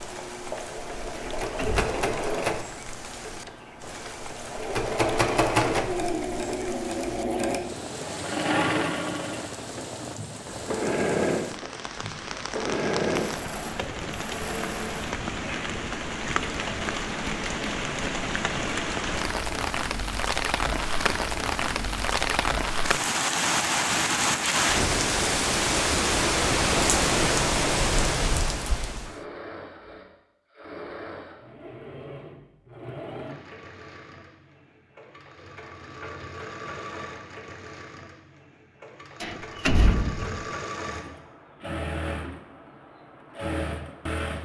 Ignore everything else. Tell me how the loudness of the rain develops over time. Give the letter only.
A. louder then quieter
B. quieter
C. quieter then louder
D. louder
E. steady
D.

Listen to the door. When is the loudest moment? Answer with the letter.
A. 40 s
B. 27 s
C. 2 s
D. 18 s
A.